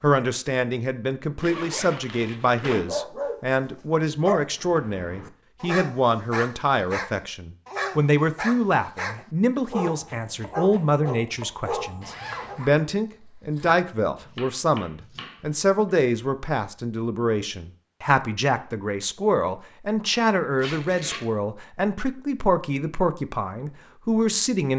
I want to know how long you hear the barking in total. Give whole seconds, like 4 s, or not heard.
10 s.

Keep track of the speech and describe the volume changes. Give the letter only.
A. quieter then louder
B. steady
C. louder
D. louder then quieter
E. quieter
B.